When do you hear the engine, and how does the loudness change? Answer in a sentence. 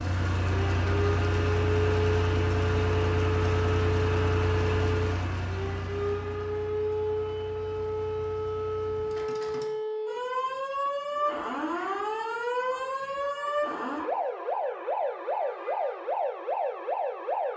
You can hear the engine from 0.0 to 9.7 s, getting quieter.